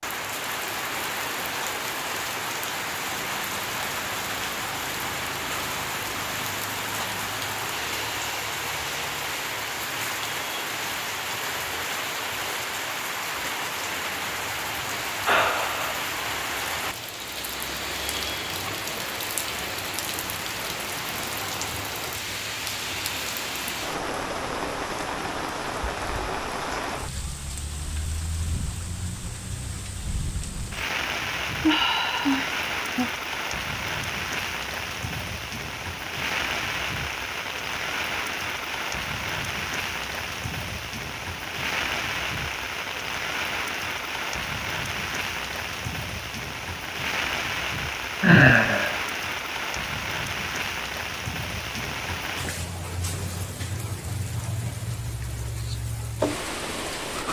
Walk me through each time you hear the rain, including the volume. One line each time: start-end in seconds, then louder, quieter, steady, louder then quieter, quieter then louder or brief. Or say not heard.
0.0-57.2 steady.